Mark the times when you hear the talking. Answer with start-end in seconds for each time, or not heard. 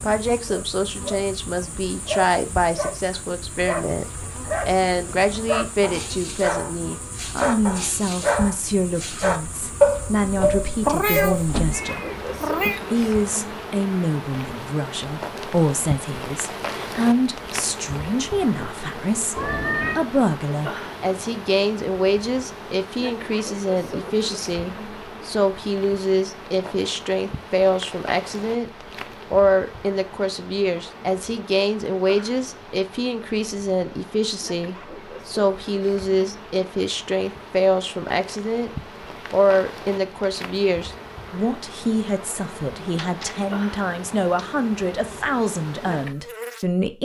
0.0-12.1, 12.9-28.7, 29.3-38.7, 39.3-47.0.